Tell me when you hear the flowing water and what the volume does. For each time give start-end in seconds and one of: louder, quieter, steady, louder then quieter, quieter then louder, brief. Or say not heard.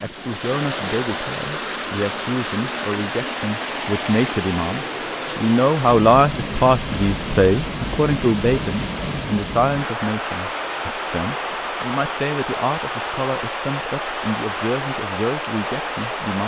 0.0-16.4 steady.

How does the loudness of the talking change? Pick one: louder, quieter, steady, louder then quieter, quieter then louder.
louder then quieter.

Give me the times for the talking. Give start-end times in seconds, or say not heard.
0.0-16.4.